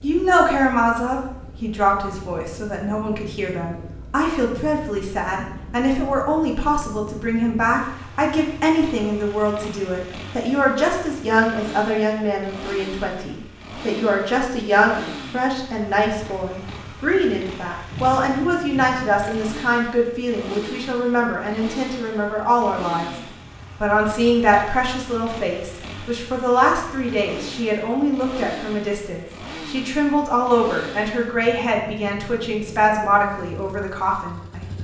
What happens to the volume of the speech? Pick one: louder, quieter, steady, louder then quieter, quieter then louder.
steady.